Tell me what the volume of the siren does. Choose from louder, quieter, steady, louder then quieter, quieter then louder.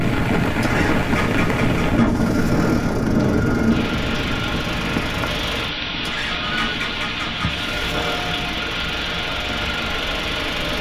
quieter.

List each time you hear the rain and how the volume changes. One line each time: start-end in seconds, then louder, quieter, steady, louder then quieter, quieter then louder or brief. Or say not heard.
0.0-10.7 steady.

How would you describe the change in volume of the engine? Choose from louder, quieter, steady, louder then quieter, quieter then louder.
steady.